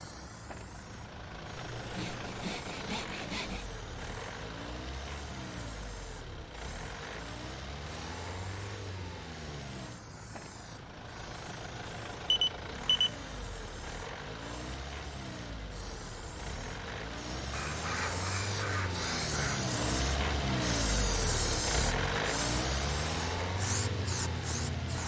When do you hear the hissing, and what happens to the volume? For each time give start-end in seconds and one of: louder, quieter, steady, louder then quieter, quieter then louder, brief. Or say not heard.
0.0-25.0 louder.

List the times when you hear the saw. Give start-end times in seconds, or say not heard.
1.6-3.6, 17.5-19.6.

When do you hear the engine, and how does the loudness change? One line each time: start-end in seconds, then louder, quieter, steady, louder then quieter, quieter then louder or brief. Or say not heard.
0.0-25.0 louder.